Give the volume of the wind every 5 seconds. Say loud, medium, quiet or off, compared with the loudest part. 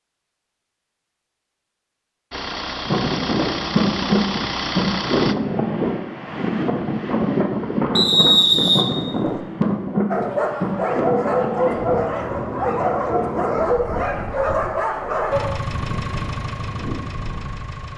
loud, loud, medium, quiet.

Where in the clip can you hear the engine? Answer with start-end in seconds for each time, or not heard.
2.3-5.3, 15.3-17.9.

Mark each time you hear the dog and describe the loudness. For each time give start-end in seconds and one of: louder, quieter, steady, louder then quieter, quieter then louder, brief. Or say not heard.
10.1-15.5 steady.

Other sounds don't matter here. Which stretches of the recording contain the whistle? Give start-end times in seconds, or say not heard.
8.0-9.3.